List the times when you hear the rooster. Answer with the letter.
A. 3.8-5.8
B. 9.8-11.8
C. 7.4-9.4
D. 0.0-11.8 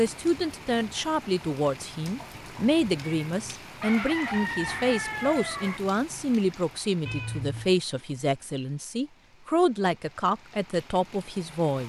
A.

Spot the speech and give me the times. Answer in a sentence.
The speech can be heard from 0.0 to 11.8 s.